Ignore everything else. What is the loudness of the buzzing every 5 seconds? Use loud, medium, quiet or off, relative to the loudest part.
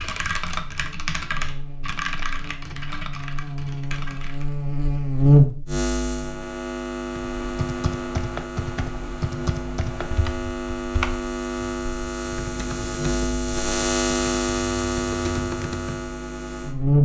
medium, loud, loud, loud.